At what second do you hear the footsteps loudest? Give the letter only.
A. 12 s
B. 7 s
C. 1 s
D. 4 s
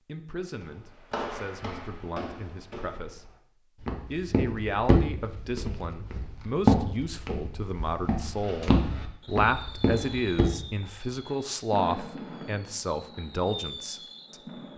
B.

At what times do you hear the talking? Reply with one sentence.
You can hear the talking from 0.1 to 3.2 s and from 4.0 to 14.3 s.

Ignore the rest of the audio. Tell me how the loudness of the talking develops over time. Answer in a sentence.
The volume of the talking goes up.